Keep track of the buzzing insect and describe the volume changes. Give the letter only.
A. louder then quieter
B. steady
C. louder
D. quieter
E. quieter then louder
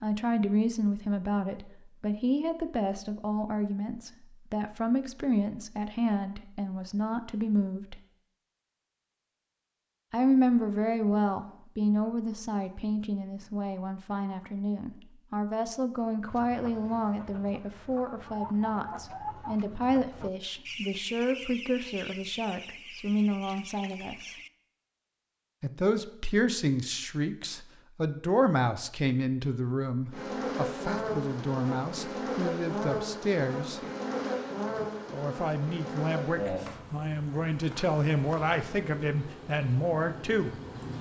D.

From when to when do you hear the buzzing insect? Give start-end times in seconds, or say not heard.
30.1-40.9.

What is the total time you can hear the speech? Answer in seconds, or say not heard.
36 s.